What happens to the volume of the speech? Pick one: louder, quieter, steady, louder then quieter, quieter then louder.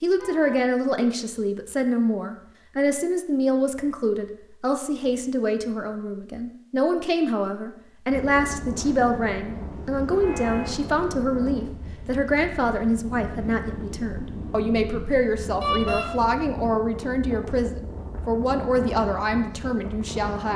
steady.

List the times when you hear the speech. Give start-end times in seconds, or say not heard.
0.0-20.5.